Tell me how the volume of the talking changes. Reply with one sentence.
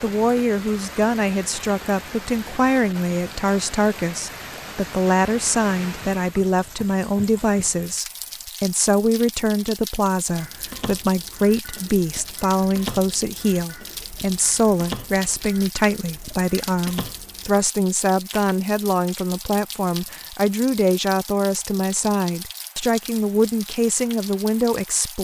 The volume of the talking stays about the same.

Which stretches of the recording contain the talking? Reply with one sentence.
The talking can be heard from 0.0 to 25.2 s.